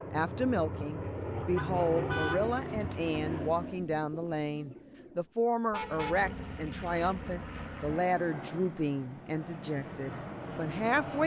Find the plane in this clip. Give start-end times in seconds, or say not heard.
0.0-3.9, 5.7-11.2.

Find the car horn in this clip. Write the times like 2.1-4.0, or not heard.
1.6-2.5, 5.7-6.3.